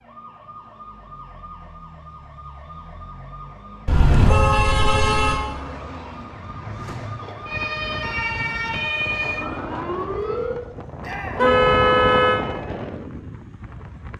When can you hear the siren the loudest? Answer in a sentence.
The loudest moment of the siren is at 9 seconds.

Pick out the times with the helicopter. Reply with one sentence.
You can't hear the helicopter here.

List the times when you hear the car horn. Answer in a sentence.
You can hear the car horn from 3.9 to 5.4 s and from 11.3 to 12.4 s.